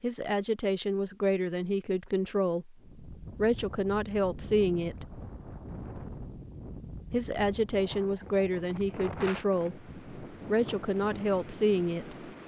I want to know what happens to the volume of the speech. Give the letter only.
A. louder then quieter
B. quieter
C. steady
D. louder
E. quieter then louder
C.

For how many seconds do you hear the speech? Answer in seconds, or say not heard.
10 s.